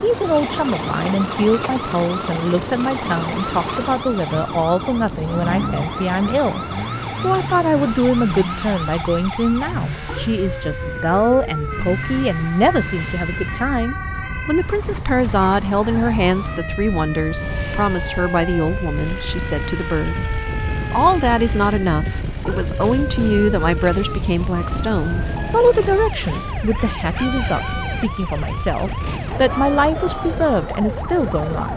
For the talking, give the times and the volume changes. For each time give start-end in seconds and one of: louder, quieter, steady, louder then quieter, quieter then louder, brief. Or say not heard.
0.0-31.7 steady.